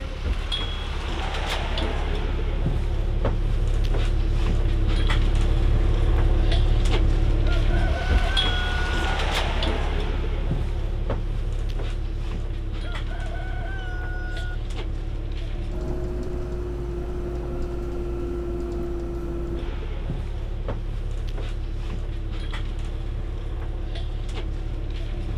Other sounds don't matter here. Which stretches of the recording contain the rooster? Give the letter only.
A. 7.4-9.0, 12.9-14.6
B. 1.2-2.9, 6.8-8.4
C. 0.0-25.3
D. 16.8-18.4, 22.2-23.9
A.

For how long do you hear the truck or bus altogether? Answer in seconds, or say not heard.
25 s.